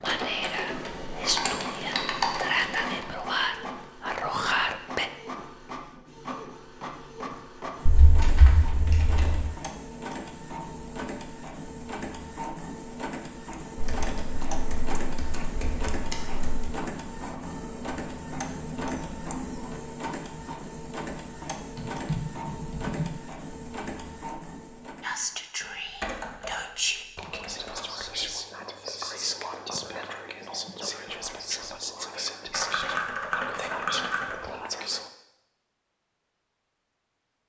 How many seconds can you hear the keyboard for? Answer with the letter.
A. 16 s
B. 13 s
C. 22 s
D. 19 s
B.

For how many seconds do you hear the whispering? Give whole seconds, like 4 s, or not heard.
15 s.